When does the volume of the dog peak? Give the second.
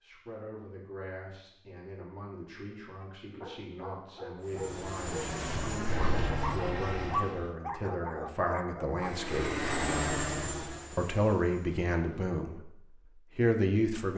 7 s.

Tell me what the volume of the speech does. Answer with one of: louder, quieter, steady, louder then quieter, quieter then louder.
louder.